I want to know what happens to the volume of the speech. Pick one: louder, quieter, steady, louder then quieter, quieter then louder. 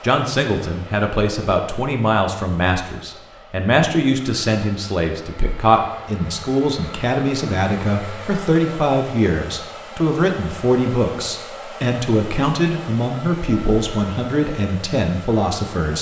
steady.